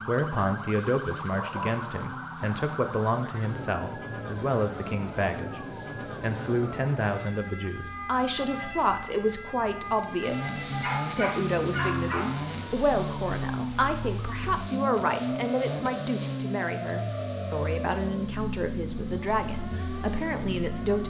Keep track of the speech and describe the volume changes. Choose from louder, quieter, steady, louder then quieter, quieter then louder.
steady.